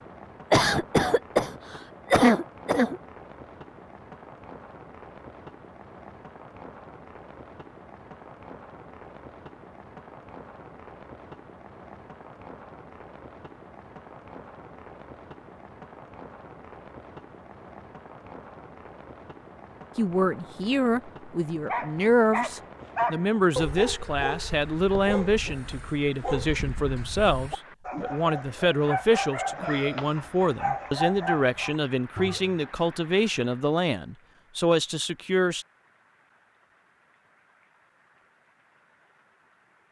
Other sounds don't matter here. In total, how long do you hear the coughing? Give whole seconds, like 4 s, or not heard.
3 s.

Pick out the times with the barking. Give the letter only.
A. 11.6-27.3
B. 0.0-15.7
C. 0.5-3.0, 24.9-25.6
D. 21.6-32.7
D.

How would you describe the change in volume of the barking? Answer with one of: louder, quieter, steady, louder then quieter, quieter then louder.
quieter then louder.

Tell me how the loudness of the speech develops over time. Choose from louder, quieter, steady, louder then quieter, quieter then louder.
steady.